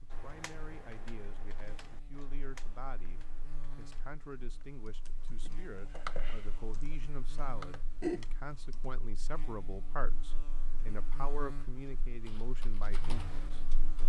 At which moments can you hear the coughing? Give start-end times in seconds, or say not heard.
not heard.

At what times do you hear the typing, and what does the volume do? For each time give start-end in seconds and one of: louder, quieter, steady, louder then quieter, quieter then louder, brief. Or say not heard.
0.1-8.9 quieter then louder
12.2-14.0 brief.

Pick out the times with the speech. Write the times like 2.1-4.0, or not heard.
0.0-14.0.